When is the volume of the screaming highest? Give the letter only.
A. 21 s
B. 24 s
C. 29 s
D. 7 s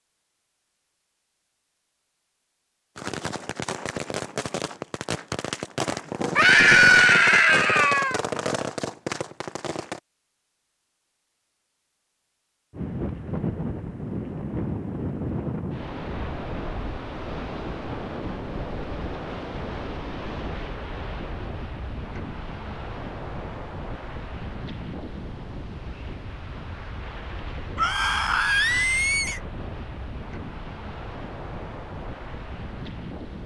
D.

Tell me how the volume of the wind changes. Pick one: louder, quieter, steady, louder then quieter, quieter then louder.
quieter.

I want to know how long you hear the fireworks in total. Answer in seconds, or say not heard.
7 s.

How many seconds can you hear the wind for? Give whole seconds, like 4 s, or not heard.
21 s.